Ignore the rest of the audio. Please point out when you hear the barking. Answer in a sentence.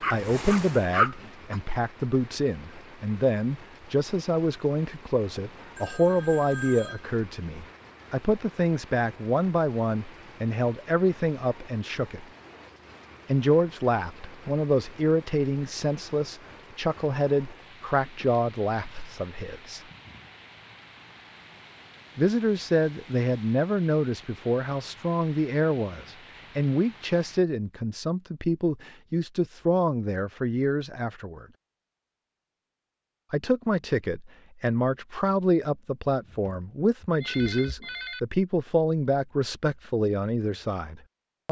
The barking can be heard from 0.0 to 1.6 s.